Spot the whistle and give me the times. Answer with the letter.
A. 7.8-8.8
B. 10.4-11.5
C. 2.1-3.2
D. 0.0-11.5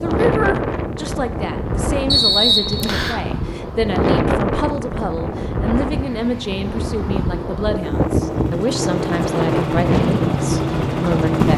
C.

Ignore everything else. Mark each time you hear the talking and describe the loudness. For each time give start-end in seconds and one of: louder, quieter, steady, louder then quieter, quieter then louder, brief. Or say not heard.
0.0-11.5 steady.